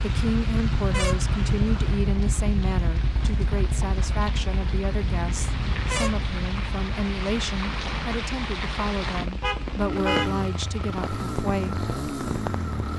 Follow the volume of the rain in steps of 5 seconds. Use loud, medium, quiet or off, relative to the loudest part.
medium, loud, loud.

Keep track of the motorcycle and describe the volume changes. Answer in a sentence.
The loudness of the motorcycle goes down, then up.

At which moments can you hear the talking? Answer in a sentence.
The talking can be heard from 0.0 to 11.8 s.